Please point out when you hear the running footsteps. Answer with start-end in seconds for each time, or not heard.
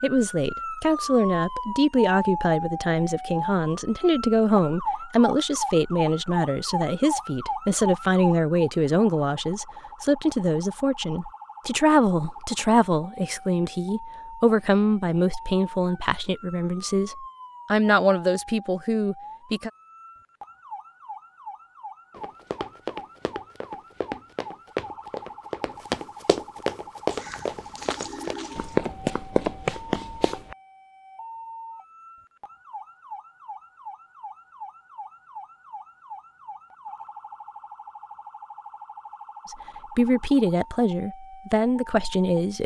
22.1-30.6.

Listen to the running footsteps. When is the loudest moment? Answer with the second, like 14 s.
29 s.